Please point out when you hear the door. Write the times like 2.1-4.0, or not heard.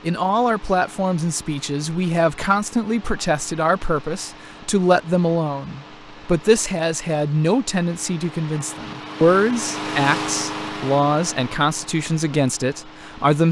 not heard.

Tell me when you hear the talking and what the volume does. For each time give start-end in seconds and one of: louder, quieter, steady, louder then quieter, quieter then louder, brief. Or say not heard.
0.0-13.4 steady.